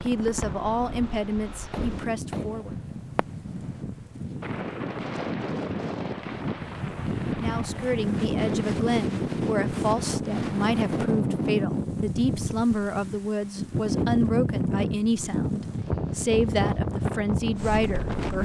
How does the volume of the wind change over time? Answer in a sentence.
The volume of the wind goes up.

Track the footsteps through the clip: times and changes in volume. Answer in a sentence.
The footsteps can't be heard in this clip.